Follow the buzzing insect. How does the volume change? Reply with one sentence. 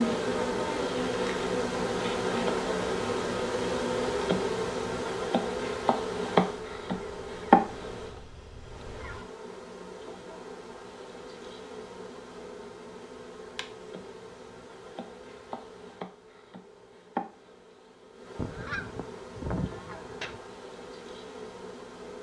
The volume of the buzzing insect goes down.